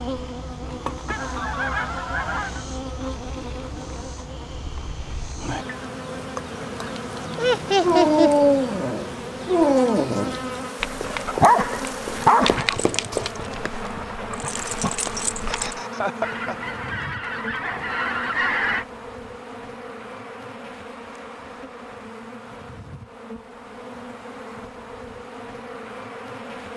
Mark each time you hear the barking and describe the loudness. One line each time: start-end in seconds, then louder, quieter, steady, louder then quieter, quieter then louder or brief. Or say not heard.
7.8-15.8 quieter.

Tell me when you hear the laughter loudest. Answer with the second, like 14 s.
8 s.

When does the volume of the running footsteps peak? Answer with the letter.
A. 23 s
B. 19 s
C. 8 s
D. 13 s
D.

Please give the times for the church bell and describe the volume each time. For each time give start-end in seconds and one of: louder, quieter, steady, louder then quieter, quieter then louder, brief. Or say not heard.
not heard.